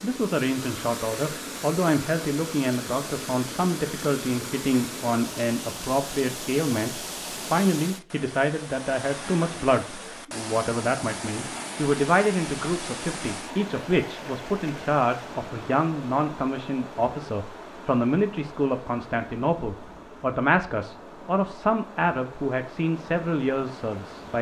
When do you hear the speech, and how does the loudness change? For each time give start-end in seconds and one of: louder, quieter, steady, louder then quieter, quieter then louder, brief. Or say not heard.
0.0-24.3 steady.